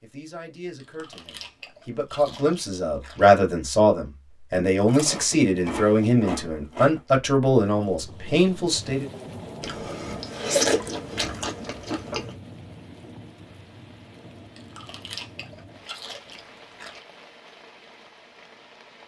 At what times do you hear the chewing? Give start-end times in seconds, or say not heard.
0.8-3.2, 4.8-7.0, 9.6-12.3, 14.6-17.1.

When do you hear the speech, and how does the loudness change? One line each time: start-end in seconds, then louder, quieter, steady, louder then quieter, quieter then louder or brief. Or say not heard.
0.0-9.1 louder.